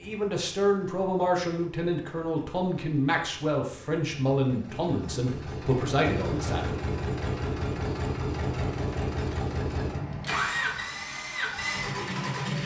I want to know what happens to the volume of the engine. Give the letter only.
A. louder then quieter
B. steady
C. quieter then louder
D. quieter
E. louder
E.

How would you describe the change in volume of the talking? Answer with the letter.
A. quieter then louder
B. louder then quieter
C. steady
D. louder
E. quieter
C.